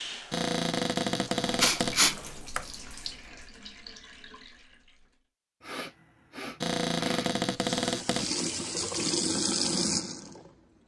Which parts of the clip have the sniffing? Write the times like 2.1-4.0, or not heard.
1.6-2.6, 5.6-7.4.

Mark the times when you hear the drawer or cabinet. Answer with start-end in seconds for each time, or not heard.
0.3-2.0, 6.6-8.3.